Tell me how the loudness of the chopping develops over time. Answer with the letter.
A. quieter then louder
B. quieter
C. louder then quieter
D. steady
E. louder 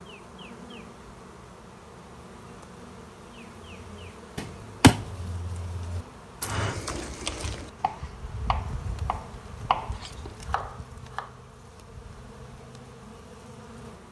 A.